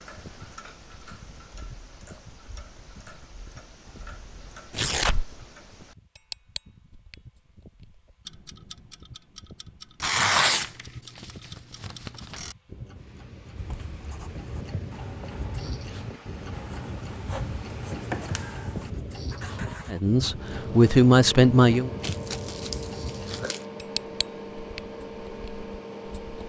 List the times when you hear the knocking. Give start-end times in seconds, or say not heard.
not heard.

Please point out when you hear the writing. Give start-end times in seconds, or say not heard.
13.6-20.0.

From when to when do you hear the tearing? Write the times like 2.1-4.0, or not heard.
4.7-5.3, 10.0-12.4, 22.0-23.6.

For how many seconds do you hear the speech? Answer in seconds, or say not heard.
2 s.